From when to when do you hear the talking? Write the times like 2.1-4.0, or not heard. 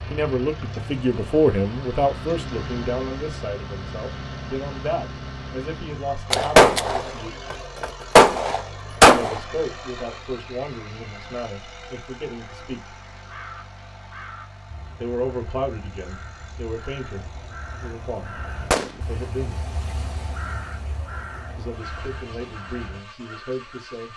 0.0-7.3, 9.1-12.9, 15.0-19.6, 21.6-24.1.